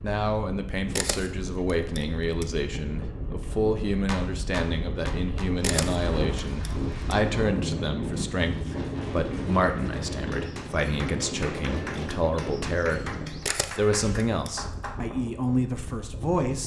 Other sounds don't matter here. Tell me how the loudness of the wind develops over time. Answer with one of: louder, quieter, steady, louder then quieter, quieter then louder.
louder then quieter.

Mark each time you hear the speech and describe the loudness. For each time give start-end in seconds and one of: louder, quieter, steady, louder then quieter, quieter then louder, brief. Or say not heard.
0.0-13.1 steady
13.8-16.6 brief.